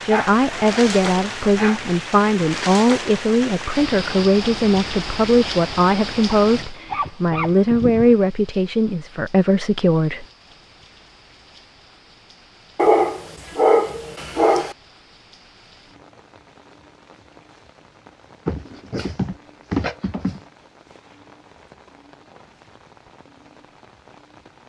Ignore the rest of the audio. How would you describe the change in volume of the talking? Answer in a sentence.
The loudness of the talking stays about the same.